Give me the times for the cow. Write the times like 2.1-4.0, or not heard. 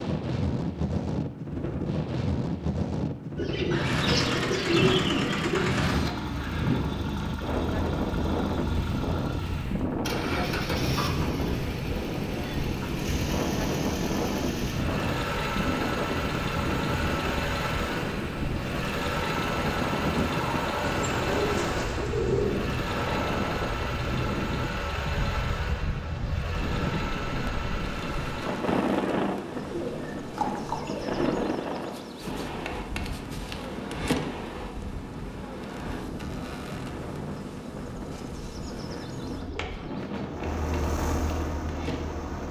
not heard.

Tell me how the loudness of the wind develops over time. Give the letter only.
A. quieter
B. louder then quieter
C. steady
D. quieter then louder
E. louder
A.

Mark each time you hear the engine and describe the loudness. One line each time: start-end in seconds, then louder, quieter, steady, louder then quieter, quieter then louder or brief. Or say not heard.
3.8-28.7 steady
40.2-42.4 brief.